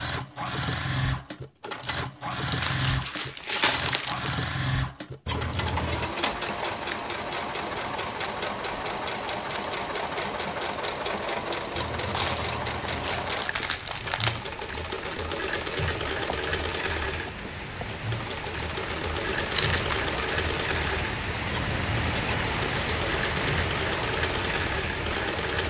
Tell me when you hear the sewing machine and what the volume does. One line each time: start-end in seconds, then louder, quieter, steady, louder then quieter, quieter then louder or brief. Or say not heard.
0.0-25.6 steady.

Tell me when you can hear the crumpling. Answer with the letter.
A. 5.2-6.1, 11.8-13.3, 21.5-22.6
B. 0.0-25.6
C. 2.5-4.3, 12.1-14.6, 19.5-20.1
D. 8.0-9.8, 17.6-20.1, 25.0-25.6
C.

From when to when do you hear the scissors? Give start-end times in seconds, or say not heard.
5.2-6.1, 11.8-13.3, 21.5-22.6.